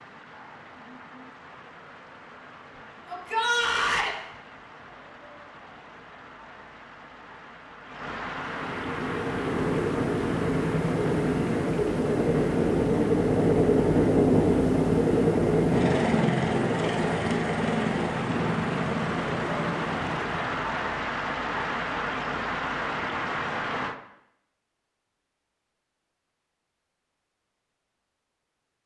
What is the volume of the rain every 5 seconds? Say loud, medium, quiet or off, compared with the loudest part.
quiet, medium, medium, medium, loud, off.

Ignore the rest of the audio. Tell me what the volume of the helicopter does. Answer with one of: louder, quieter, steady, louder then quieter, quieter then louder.
louder then quieter.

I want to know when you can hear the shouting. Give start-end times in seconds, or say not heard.
3.0-4.2.